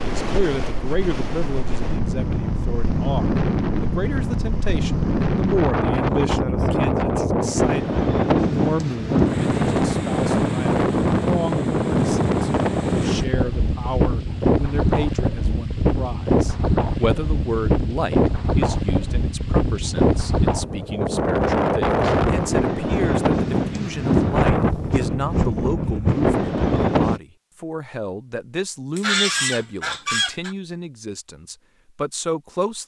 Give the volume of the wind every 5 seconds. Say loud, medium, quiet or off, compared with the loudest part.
medium, loud, loud, loud, loud, loud, off.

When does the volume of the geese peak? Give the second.
29 s.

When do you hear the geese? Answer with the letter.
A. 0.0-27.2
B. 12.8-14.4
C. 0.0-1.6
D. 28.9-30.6
D.